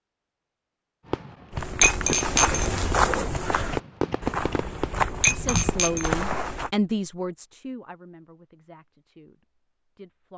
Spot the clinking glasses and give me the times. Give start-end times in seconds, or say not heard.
1.8-2.6, 5.2-6.2.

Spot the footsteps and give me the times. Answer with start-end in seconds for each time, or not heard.
1.5-6.7.